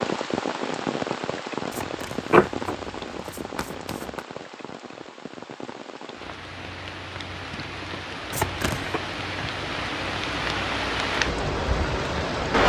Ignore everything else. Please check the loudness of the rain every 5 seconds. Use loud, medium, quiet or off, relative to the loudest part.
medium, medium, loud.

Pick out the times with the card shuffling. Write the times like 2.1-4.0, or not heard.
1.7-4.2, 8.3-9.0.